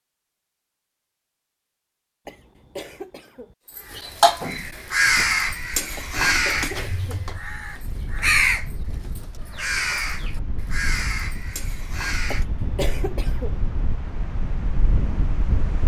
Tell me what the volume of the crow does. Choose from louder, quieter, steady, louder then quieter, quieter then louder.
quieter.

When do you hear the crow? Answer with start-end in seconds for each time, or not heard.
3.6-12.4.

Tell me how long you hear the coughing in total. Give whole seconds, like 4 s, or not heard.
4 s.